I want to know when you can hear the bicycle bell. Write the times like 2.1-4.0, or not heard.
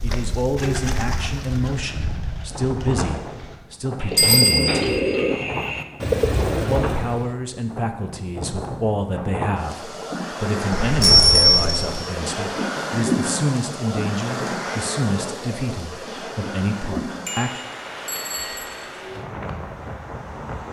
4.2-5.0, 10.8-12.1, 17.2-18.7.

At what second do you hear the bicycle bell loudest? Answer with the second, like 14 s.
11 s.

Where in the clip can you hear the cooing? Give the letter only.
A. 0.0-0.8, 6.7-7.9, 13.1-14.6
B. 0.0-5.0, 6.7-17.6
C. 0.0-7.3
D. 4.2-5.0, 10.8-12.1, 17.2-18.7
C.